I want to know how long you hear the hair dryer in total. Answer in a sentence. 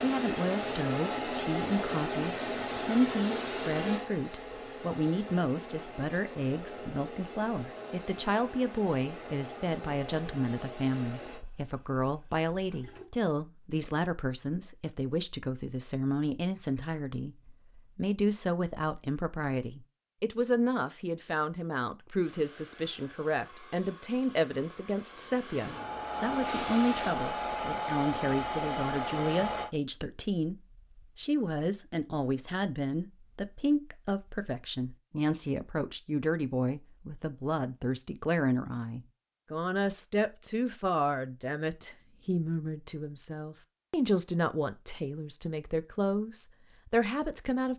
The hair dryer can be heard for 19 seconds in total.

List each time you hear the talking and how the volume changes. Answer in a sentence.
You can hear the talking from 0.0 to 47.7 s, at a steady volume.